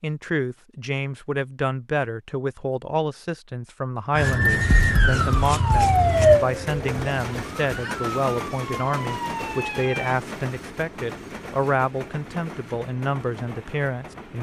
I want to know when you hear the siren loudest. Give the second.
6 s.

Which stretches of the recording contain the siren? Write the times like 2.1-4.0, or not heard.
4.2-10.2.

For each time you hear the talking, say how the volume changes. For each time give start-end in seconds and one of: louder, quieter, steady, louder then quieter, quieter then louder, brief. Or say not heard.
0.0-14.3 steady.